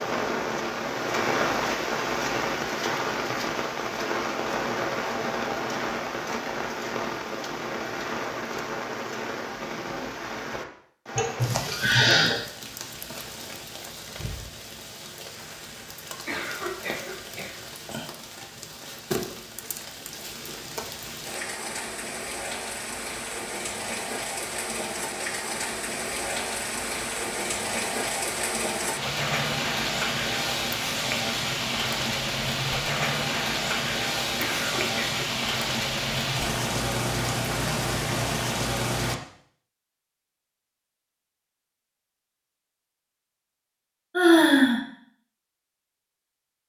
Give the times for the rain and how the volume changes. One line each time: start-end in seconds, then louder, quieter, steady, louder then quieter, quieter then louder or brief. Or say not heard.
0.0-39.1 quieter then louder.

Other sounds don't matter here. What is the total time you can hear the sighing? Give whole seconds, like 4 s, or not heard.
2 s.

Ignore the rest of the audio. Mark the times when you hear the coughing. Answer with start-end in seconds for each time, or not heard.
16.2-17.7, 34.4-35.2.